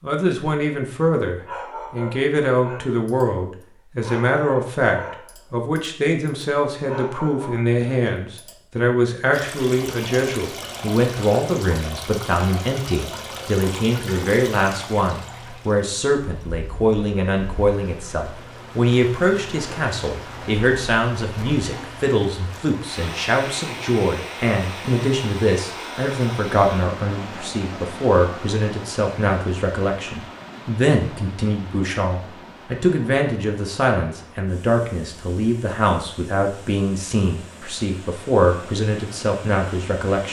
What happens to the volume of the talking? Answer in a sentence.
The volume of the talking stays about the same.